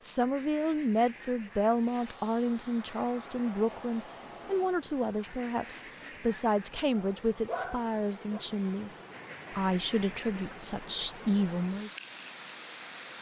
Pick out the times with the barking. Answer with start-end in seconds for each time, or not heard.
6.9-8.4.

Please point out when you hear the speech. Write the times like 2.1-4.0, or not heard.
0.0-11.9.